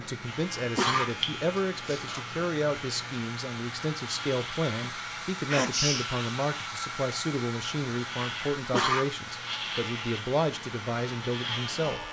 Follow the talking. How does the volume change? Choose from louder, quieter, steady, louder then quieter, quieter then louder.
steady.